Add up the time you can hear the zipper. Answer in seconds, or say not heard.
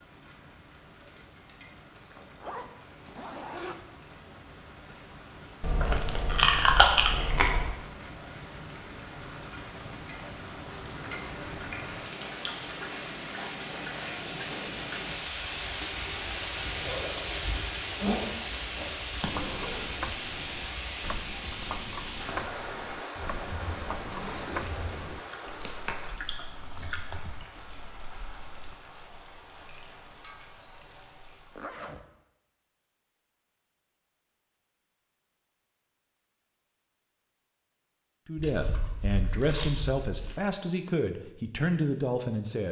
4 s.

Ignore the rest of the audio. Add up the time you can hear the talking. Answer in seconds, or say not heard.
4 s.